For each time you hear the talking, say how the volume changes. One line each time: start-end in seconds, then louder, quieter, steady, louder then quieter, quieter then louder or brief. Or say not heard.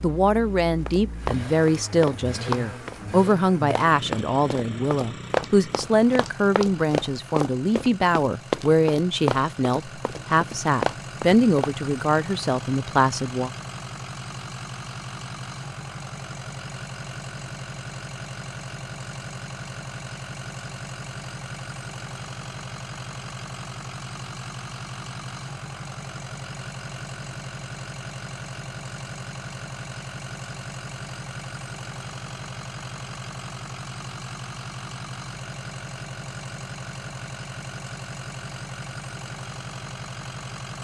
0.0-13.5 steady.